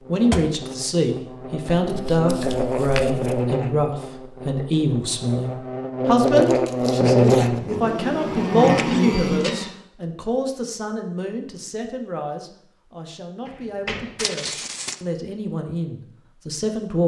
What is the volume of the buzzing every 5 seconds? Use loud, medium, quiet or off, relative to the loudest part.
medium, loud, off, off.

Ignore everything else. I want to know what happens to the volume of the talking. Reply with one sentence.
The volume of the talking goes down.